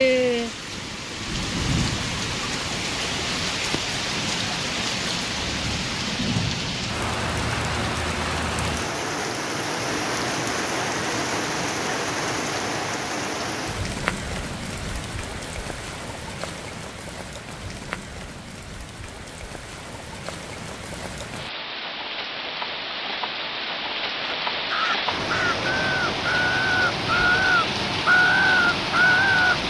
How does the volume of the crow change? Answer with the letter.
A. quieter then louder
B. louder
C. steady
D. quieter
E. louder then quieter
B.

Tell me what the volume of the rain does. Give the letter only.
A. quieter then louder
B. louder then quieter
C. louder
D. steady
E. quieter
A.